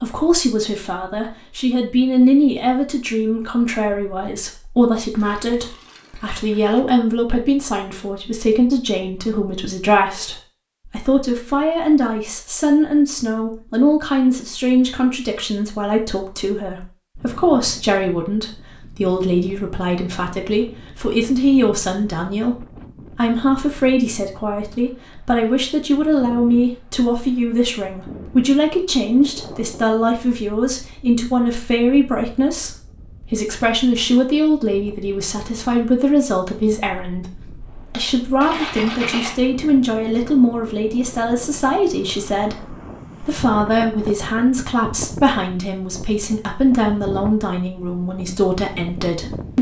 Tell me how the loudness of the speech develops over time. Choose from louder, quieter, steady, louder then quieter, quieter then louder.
steady.